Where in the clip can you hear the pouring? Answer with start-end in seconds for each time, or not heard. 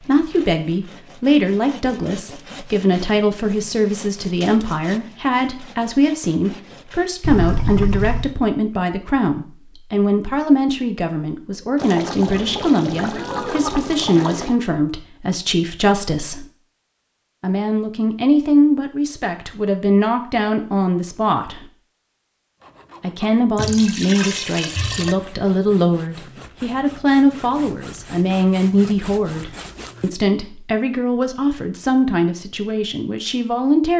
7.2-8.3, 11.8-14.6, 23.6-25.1.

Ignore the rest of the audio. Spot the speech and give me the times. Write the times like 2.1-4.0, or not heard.
0.0-16.4, 17.4-21.7, 23.0-33.9.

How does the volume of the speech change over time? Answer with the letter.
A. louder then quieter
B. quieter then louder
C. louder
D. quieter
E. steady
E.